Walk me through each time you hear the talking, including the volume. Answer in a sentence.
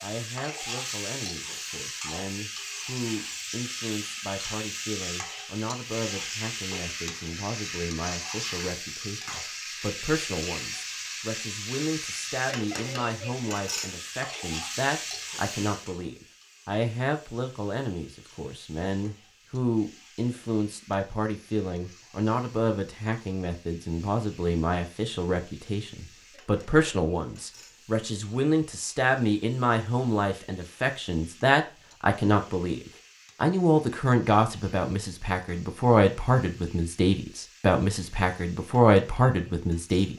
You can hear the talking from 0.0 to 40.1 s, getting louder.